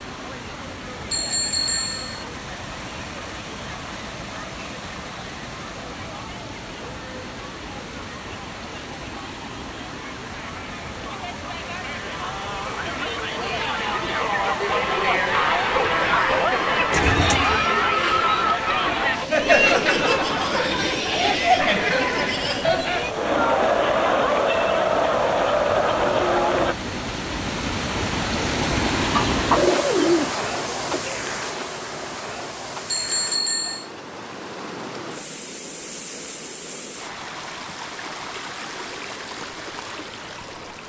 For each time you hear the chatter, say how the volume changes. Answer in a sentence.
The chatter can be heard from 0.0 to 26.8 s, getting louder.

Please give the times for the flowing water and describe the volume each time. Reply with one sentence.
The flowing water can be heard from 0.0 to 40.8 s, getting louder then quieter.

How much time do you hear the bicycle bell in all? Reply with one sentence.
You can hear the bicycle bell for 2 seconds altogether.